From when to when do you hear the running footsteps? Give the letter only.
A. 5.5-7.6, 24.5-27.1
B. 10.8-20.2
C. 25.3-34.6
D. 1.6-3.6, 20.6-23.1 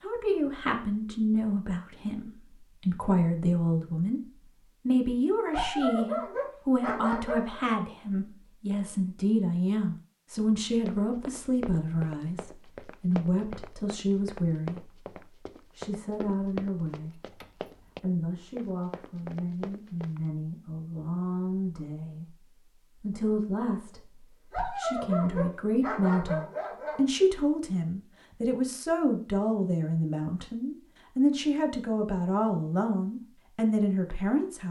B.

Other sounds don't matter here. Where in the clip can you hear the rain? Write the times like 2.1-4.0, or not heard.
not heard.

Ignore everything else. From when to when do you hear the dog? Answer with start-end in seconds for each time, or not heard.
5.5-7.6, 24.5-27.1.